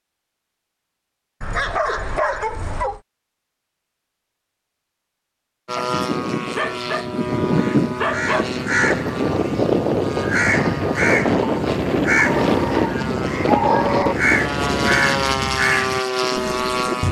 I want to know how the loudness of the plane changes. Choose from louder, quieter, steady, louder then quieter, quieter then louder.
steady.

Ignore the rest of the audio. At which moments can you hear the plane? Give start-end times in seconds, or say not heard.
5.7-17.0.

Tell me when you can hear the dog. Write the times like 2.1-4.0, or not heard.
1.4-3.0, 5.8-8.5, 12.2-14.2.